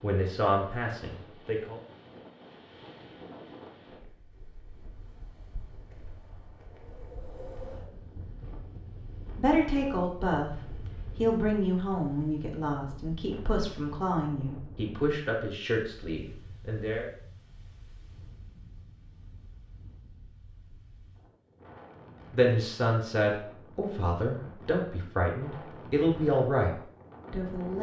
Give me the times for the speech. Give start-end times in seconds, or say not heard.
0.0-1.8, 9.3-17.1, 22.3-27.7.